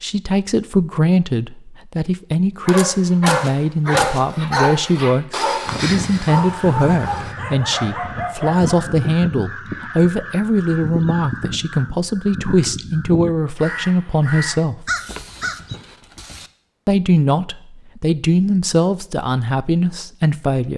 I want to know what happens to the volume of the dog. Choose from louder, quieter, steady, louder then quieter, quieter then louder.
quieter.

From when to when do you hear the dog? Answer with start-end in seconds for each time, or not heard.
2.6-8.8.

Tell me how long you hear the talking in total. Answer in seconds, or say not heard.
19 s.